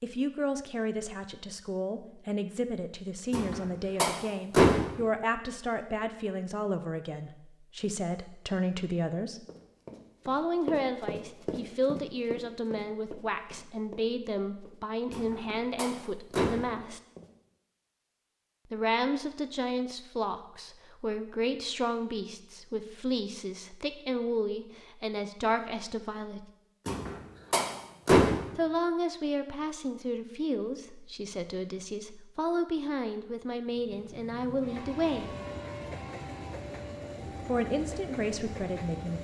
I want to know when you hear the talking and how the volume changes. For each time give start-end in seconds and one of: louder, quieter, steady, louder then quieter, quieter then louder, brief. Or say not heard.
0.0-9.4 steady
10.2-17.0 steady
18.7-26.5 steady
28.6-35.4 steady
37.5-39.2 brief.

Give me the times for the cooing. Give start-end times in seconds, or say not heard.
not heard.